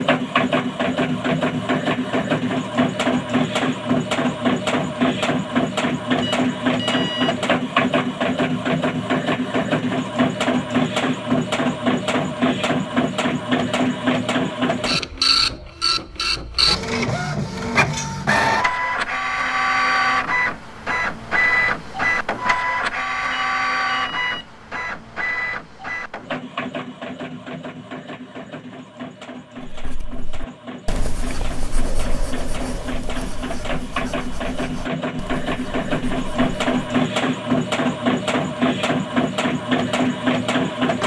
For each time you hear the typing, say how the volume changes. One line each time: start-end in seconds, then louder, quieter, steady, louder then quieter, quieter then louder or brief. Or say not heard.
not heard.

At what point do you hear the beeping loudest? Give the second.
7 s.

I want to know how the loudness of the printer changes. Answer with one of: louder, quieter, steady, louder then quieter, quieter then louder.
quieter then louder.